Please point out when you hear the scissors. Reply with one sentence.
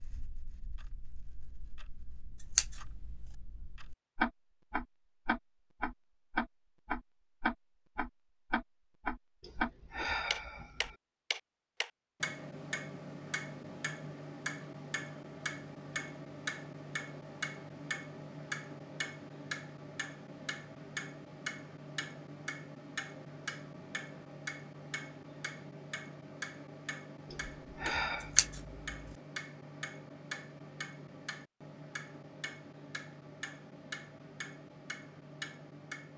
The scissors can be heard from 2.5 to 3.1 s and from 28.4 to 28.9 s.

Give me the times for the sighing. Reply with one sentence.
The sighing can be heard from 9.4 to 10.9 s and from 27.3 to 28.4 s.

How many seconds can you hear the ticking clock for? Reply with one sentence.
The ticking clock can be heard for 36 seconds in total.